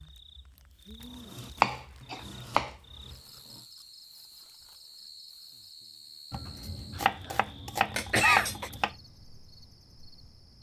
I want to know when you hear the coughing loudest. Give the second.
8 s.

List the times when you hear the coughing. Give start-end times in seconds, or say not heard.
1.7-2.2, 8.0-8.7.